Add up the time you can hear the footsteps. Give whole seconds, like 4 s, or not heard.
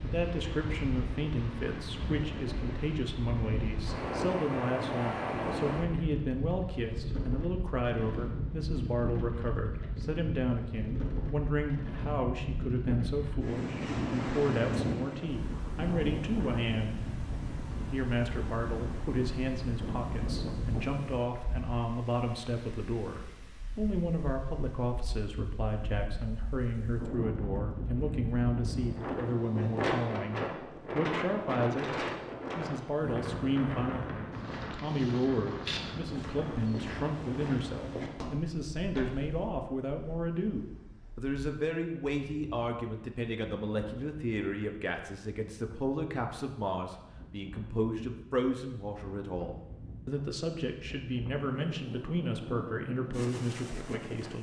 5 s.